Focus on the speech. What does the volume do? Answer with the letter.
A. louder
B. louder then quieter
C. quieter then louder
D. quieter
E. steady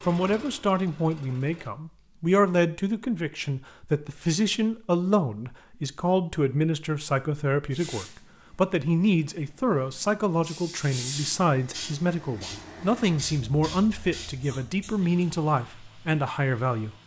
E.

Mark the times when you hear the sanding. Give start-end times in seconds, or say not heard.
not heard.